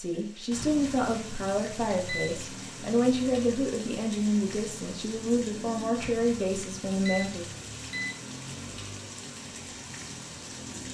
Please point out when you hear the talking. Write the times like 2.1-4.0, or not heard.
0.0-7.5.